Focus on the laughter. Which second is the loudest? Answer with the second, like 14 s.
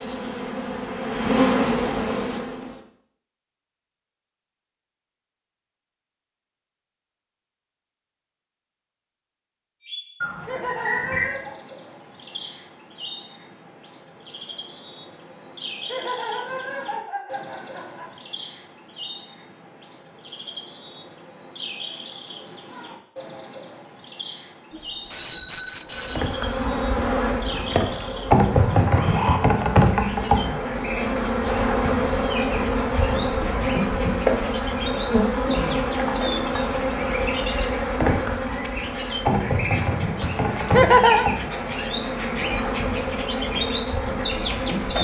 41 s.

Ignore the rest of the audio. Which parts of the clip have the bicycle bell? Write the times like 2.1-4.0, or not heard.
24.7-26.4.